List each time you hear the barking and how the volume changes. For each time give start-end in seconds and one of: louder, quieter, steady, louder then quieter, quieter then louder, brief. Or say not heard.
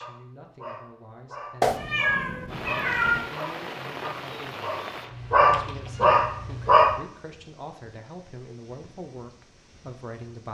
0.0-7.0 louder.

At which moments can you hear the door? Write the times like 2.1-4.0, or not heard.
not heard.